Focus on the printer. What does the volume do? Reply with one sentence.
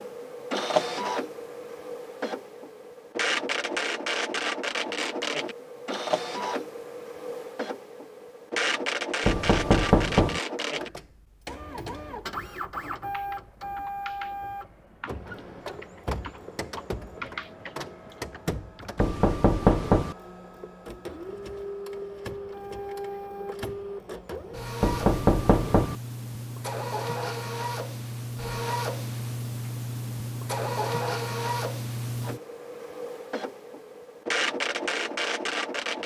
The loudness of the printer goes down, then up.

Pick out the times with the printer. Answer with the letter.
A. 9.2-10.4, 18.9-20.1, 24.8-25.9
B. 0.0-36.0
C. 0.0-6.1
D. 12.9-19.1
B.